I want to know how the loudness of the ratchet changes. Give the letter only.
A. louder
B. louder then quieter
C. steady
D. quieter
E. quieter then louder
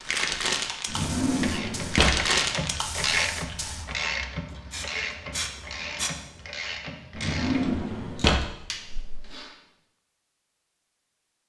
D.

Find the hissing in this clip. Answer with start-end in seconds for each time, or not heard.
0.0-6.1.